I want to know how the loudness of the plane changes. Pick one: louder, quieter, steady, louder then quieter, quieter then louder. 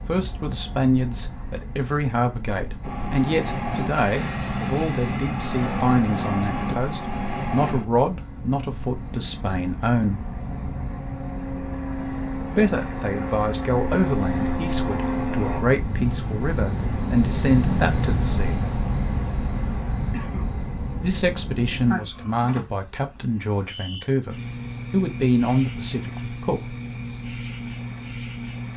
quieter then louder.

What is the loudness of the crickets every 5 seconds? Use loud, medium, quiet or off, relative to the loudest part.
quiet, quiet, medium, loud, medium, medium.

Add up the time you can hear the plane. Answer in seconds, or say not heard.
13 s.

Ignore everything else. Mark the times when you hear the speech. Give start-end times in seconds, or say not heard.
0.1-10.3, 12.4-18.8, 21.0-26.8.